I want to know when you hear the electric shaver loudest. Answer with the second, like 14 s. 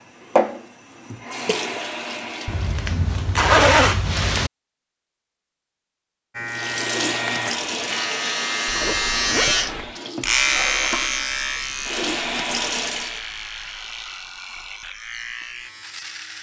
11 s.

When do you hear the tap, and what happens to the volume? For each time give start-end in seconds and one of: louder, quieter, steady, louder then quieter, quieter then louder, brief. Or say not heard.
0.0-2.9 brief
6.5-13.2 quieter then louder.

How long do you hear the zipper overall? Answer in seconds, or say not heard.
3 s.